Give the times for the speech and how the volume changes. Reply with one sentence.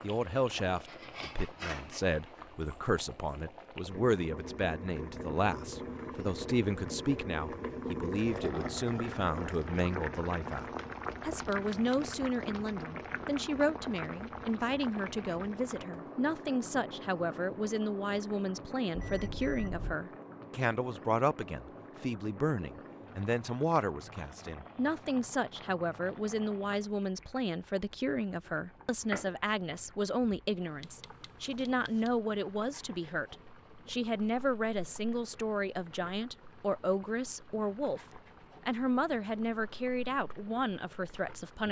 The speech can be heard from 0.0 to 41.6 s, at a steady volume.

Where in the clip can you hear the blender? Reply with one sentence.
You can't hear the blender here.